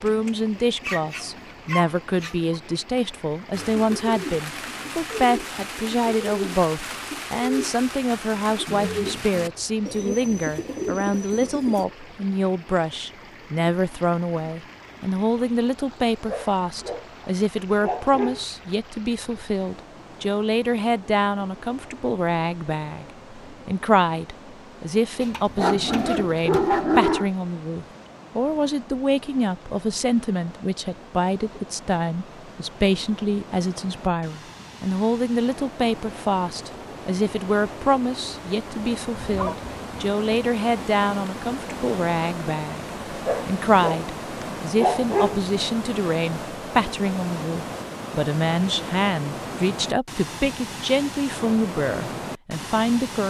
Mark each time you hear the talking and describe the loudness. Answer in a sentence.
The talking can be heard from 0.0 to 53.2 s, at a steady volume.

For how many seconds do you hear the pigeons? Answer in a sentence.
The pigeons can be heard for 8 seconds in total.